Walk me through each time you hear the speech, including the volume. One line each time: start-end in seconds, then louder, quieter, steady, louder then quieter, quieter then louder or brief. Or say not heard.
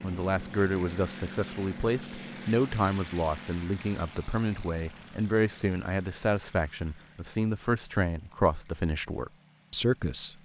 0.0-10.3 steady.